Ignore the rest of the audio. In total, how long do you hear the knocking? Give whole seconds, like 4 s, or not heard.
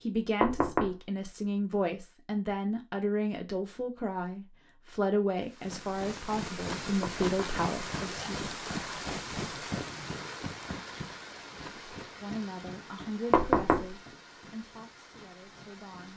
2 s.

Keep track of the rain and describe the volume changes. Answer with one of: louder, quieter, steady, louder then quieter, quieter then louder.
quieter.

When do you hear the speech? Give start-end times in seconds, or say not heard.
0.0-8.4, 12.2-16.1.